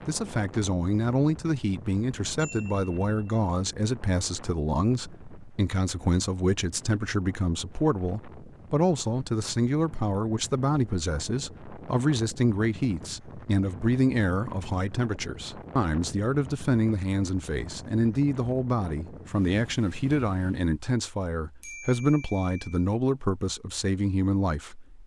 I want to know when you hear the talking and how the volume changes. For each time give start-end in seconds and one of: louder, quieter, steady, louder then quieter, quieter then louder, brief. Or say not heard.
0.1-25.0 steady.